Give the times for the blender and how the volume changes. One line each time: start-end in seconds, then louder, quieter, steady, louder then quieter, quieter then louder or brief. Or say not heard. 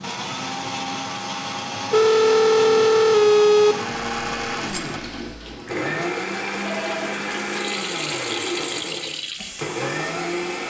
0.0-10.6 steady.